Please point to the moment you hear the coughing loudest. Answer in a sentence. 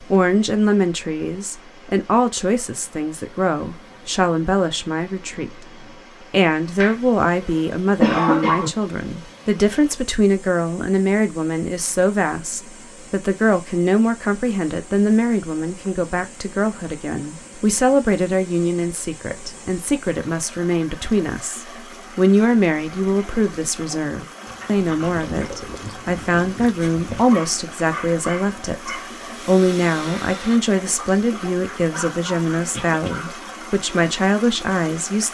The loudest moment of the coughing is at 8 seconds.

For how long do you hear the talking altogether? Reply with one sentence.
You can hear the talking for 35 seconds altogether.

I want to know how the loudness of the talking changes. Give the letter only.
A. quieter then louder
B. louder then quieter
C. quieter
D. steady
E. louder
D.